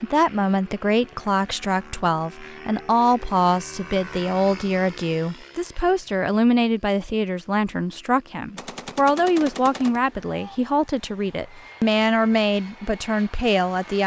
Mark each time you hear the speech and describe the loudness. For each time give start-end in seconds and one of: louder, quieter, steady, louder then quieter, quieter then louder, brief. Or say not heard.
0.0-14.0 steady.